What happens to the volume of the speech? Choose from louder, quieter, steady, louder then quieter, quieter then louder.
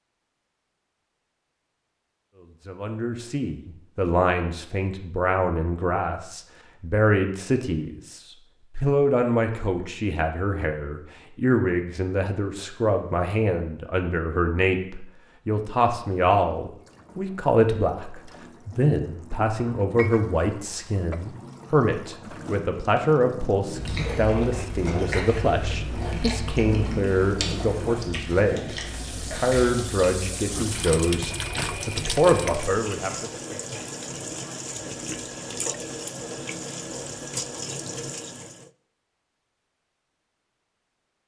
steady.